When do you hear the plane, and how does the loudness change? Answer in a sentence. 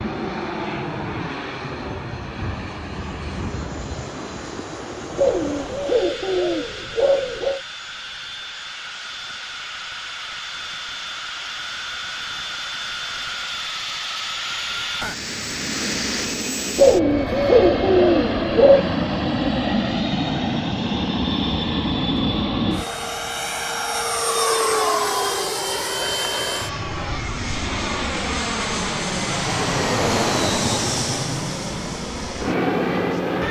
The plane can be heard from 0.0 to 33.4 s, getting louder.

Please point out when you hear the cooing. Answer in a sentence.
You can hear the cooing from 5.2 to 7.6 s and from 16.8 to 18.9 s.